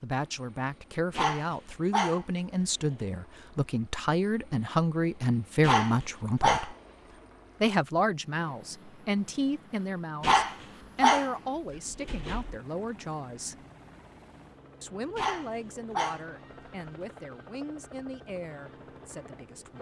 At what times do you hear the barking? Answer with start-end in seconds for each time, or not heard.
1.1-2.2, 5.6-6.7, 10.2-11.3, 11.9-12.6, 15.2-16.2.